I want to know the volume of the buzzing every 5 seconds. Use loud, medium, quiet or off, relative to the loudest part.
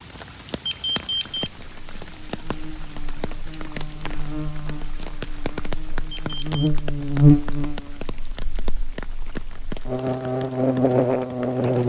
quiet, loud, loud.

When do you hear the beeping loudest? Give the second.
1 s.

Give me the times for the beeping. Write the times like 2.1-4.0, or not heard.
0.7-1.5, 6.2-6.7.